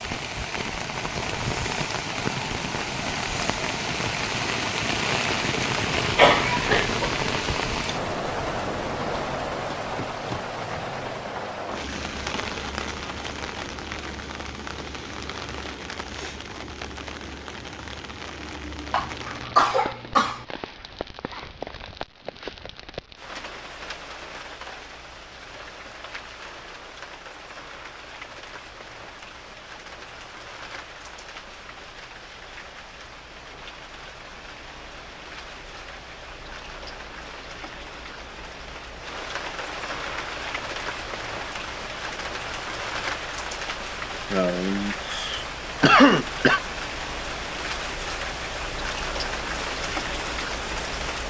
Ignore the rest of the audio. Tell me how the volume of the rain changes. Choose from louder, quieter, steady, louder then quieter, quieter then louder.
quieter then louder.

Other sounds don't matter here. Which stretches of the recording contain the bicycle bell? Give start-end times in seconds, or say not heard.
not heard.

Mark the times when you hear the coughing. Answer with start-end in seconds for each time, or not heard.
6.2-7.2, 18.9-20.4, 44.3-46.6.